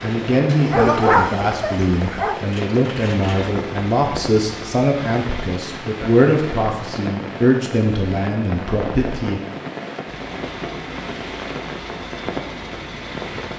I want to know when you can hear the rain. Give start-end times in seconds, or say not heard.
0.0-13.5.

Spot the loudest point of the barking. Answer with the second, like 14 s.
1 s.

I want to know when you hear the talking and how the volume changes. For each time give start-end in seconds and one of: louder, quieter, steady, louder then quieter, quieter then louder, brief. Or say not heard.
0.0-9.4 steady.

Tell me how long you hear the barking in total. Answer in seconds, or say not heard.
2 s.